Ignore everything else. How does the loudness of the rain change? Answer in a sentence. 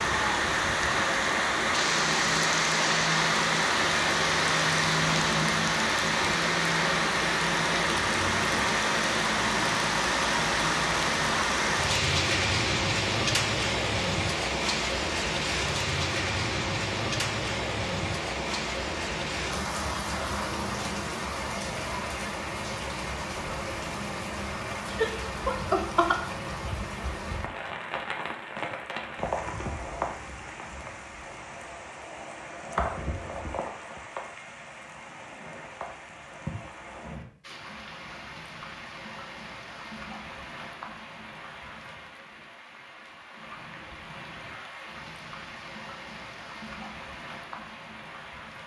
The volume of the rain goes down.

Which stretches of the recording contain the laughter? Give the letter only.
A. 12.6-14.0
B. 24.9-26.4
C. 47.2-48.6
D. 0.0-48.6
B.